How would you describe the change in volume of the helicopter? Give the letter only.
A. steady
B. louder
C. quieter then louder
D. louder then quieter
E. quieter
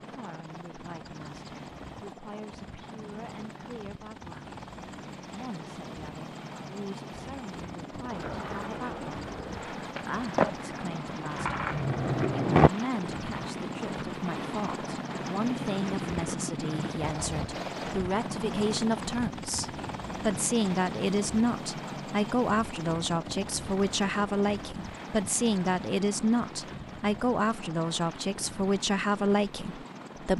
D.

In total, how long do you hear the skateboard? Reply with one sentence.
You can hear the skateboard for 5 seconds altogether.